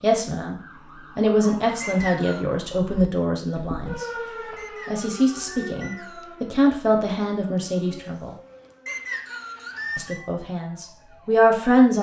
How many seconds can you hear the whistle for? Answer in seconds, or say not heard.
4 s.